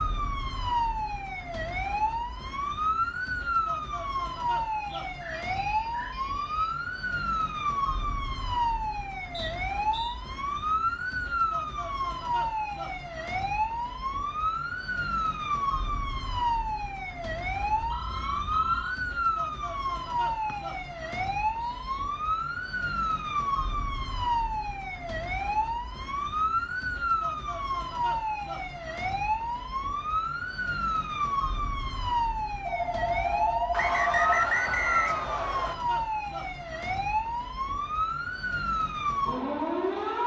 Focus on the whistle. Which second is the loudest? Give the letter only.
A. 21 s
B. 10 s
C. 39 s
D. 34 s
D.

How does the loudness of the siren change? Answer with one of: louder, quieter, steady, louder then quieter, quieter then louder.
steady.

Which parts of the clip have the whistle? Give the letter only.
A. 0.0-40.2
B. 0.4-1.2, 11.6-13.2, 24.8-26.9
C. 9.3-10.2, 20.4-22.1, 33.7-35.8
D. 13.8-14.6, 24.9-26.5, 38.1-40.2
C.